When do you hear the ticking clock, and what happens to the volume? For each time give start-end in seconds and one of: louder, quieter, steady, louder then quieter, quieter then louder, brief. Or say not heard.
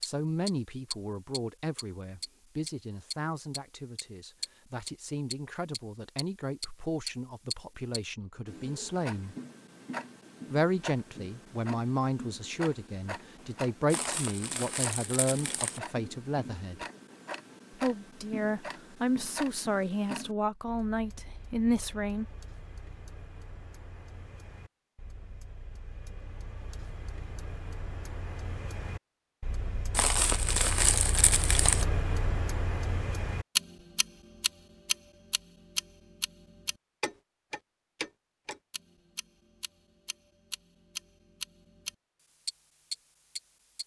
0.0-43.8 quieter then louder.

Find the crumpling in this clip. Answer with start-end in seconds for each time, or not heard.
13.9-15.8, 29.9-31.9.